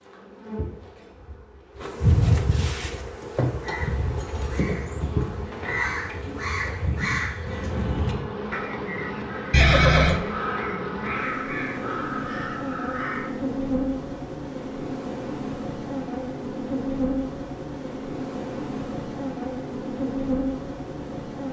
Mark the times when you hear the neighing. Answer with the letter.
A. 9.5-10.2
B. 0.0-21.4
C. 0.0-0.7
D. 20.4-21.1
A.